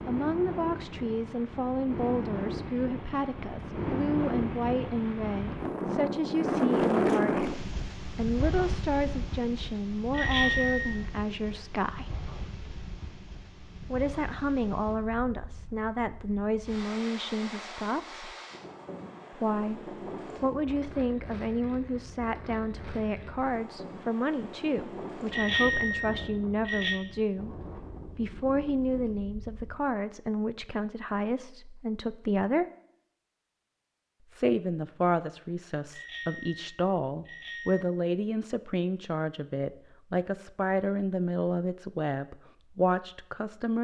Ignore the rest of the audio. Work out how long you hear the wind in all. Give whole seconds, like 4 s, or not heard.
30 s.